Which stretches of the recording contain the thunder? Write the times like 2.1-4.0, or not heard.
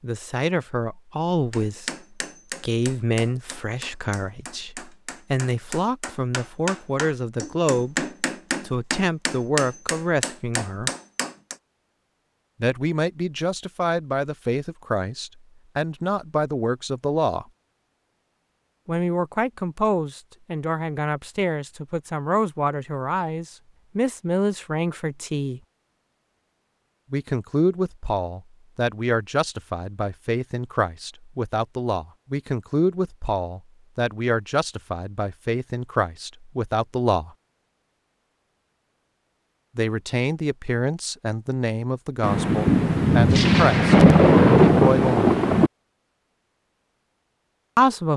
42.2-45.7.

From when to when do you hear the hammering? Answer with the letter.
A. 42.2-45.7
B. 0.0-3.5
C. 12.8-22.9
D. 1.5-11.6
D.